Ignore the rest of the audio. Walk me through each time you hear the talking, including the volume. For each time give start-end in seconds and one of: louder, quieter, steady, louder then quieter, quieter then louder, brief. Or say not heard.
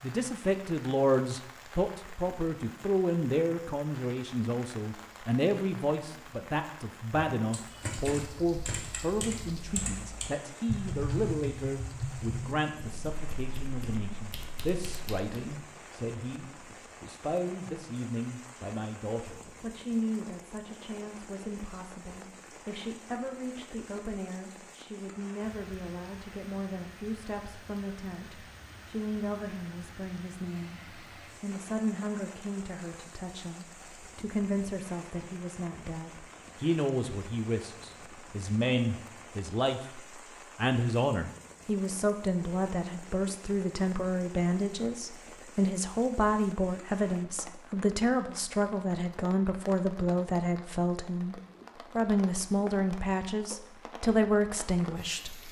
0.0-55.4 quieter then louder.